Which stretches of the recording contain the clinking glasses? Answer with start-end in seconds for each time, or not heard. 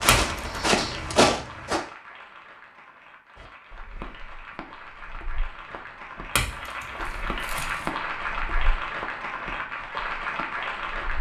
0.1-0.6, 6.3-7.9.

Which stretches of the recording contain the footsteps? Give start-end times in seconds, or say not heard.
0.0-1.8, 3.4-11.1.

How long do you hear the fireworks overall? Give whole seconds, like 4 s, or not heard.
not heard.